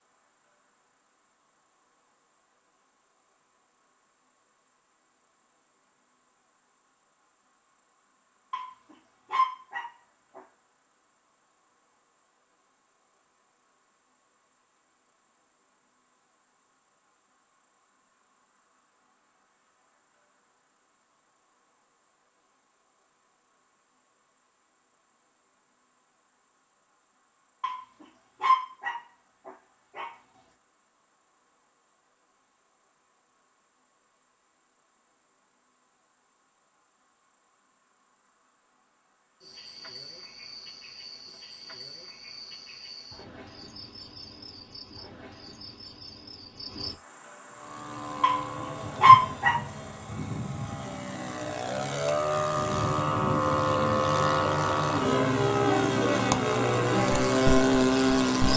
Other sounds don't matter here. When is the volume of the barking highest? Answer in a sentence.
The loudest moment of the barking is at 49 seconds.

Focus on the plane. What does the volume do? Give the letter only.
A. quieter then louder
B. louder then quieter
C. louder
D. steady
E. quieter
C.